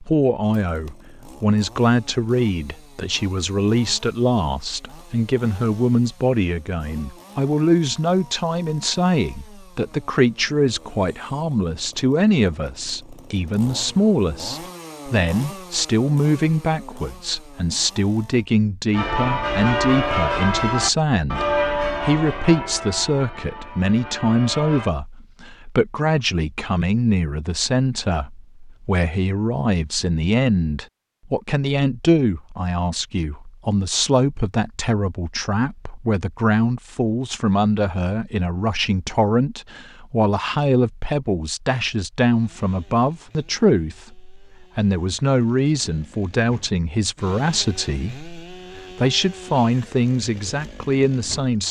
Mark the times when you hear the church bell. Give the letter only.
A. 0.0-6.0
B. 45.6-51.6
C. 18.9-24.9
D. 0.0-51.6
C.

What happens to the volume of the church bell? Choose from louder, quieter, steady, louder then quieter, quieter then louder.
quieter.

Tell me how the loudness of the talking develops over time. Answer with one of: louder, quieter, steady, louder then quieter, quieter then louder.
steady.